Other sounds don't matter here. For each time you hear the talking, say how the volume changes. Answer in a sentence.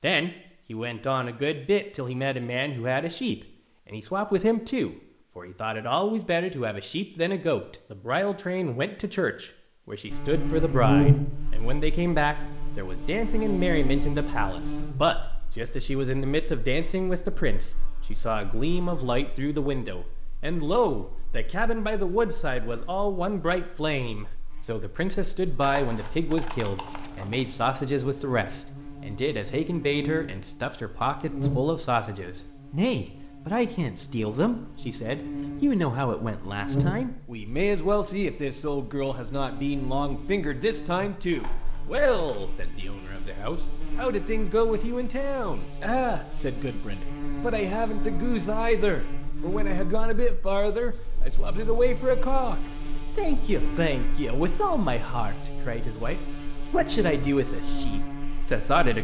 You can hear the talking from 0.0 to 58.9 s, at a steady volume.